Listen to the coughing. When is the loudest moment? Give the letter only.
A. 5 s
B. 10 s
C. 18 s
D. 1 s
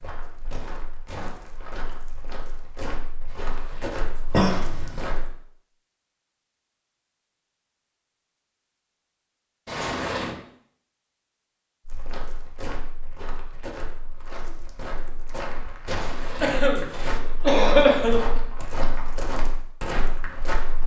C.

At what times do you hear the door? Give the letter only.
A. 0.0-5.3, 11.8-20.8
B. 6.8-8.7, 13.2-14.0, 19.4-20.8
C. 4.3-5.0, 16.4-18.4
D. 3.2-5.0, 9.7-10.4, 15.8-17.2
D.